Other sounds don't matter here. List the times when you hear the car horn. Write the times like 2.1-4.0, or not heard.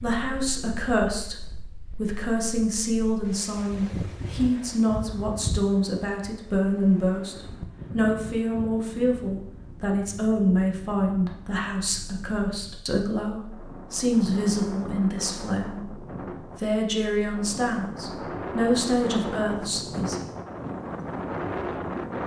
not heard.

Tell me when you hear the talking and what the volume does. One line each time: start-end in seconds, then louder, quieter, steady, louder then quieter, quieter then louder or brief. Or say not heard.
0.0-1.4 brief
1.9-20.3 steady.